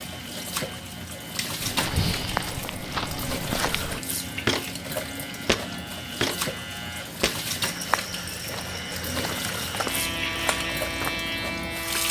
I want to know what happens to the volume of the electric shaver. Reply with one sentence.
The loudness of the electric shaver goes up.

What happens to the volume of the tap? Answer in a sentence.
The loudness of the tap stays about the same.